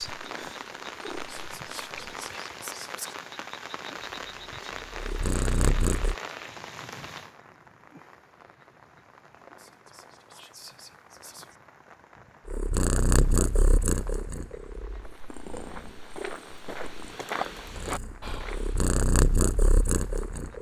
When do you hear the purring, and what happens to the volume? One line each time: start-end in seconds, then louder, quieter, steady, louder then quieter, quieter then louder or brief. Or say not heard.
0.1-2.1 brief
4.2-6.2 brief
12.4-20.5 quieter then louder.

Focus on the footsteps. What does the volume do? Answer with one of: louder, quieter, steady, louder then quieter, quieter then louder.
louder.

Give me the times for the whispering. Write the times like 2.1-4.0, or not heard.
1.2-3.1, 9.6-11.6, 18.2-18.6.